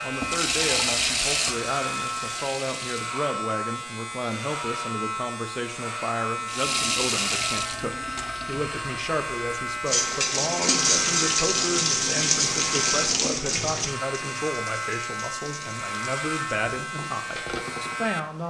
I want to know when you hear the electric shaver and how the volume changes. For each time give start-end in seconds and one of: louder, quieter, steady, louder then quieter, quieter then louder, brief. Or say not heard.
0.0-18.4 steady.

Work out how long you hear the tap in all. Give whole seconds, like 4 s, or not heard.
15 s.